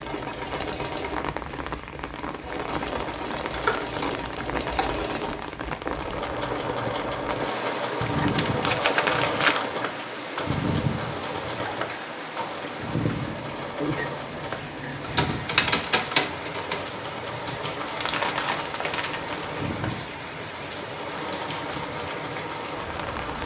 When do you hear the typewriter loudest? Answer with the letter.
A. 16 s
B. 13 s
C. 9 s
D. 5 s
A.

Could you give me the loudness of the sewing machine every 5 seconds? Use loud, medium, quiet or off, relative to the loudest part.
medium, loud, loud, medium, medium.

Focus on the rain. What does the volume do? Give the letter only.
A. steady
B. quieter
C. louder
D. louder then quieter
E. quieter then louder
A.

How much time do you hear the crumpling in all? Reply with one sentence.
You can hear the crumpling for 3 seconds altogether.